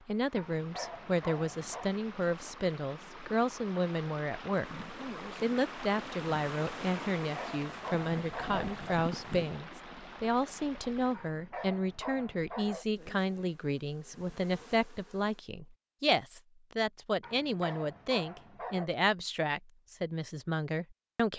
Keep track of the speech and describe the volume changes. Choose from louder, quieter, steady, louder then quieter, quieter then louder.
steady.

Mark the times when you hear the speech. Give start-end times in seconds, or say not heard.
0.1-21.3.